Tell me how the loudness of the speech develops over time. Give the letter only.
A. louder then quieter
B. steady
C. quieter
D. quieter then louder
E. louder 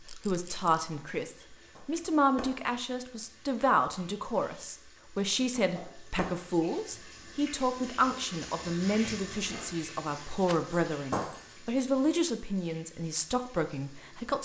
B.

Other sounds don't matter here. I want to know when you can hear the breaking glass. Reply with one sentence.
You can hear the breaking glass from 1.8 to 3.2 s, from 5.5 to 6.5 s and from 11.1 to 11.5 s.